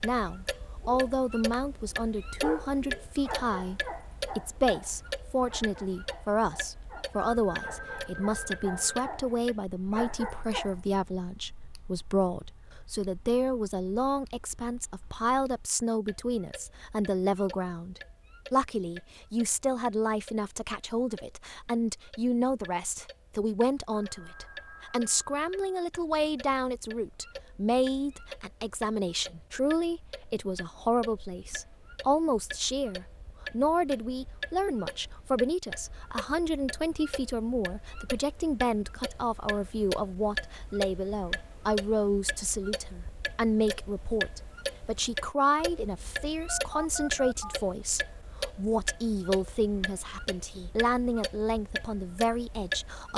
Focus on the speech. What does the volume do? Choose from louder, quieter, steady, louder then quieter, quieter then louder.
steady.